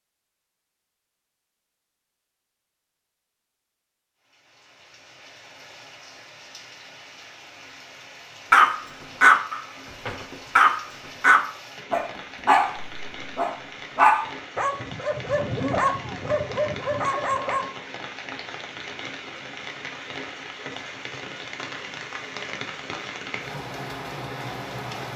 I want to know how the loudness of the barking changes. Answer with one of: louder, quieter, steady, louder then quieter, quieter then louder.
quieter.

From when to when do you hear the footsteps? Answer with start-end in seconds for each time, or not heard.
not heard.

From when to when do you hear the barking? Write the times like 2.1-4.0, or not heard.
8.5-17.6.